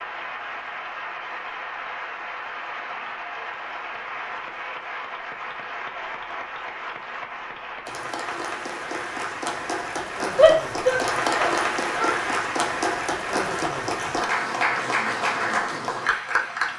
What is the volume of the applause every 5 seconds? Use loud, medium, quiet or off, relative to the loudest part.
medium, medium, loud, loud.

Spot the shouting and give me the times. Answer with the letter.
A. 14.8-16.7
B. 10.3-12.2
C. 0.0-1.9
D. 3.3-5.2
B.